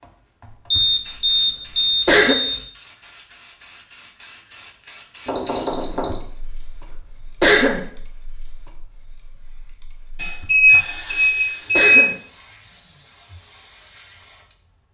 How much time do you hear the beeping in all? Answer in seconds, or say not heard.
5 s.